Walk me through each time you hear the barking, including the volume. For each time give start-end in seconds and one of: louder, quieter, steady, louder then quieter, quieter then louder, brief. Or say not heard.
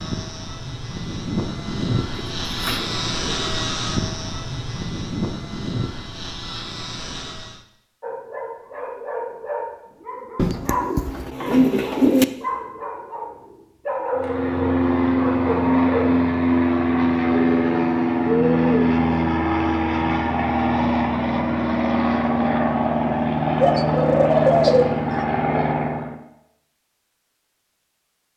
8.0-16.2 steady.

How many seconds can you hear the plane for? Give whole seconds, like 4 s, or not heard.
20 s.